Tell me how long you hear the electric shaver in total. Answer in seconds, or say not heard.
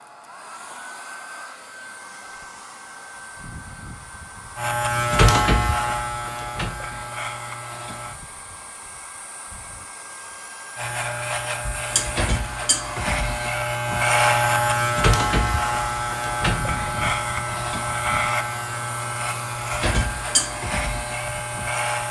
15 s.